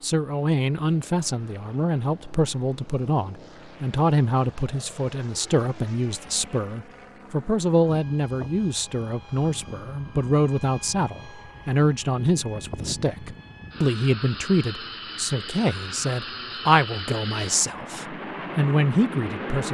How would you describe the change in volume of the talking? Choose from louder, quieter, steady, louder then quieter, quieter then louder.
steady.